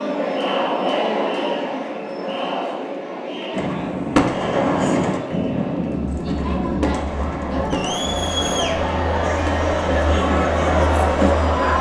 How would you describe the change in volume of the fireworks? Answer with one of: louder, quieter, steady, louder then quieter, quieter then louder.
quieter.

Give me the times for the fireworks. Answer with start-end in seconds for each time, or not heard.
3.5-9.5.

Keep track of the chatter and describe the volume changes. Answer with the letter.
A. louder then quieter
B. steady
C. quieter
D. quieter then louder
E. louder
D.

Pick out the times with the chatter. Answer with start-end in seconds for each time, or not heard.
0.0-11.7.